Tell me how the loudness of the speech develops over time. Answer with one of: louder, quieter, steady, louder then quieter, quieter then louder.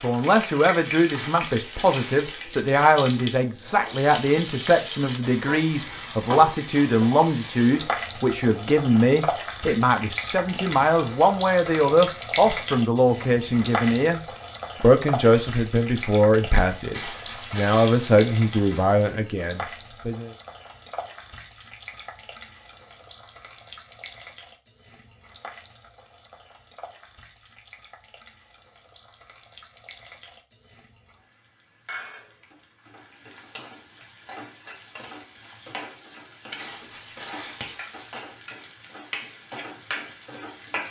steady.